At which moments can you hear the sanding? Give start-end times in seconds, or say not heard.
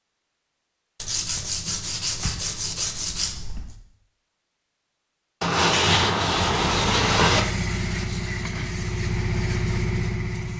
0.9-3.8, 5.4-7.4.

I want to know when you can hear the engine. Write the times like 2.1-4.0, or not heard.
6.3-10.5.